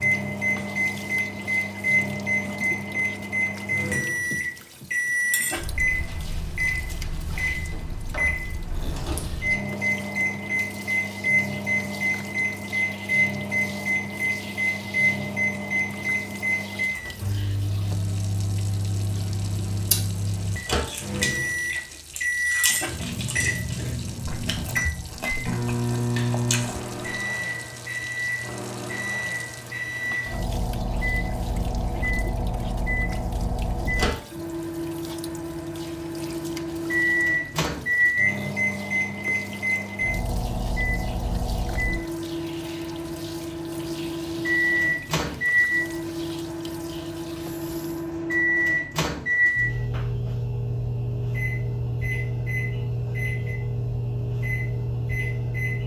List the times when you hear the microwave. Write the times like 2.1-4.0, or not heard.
0.0-55.8.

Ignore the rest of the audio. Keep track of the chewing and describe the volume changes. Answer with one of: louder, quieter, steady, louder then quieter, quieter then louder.
quieter.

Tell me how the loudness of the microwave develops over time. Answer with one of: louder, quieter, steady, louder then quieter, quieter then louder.
steady.